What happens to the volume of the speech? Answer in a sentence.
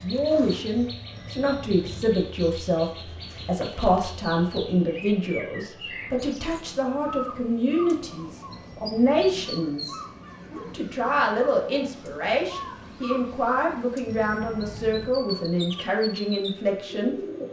The loudness of the speech stays about the same.